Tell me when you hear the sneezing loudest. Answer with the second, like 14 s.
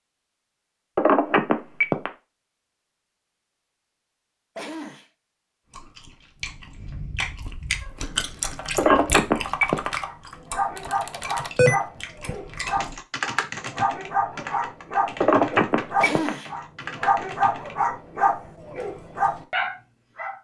16 s.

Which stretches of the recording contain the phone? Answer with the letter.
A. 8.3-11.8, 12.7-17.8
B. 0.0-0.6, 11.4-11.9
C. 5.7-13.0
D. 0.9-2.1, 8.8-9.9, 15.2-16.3
D.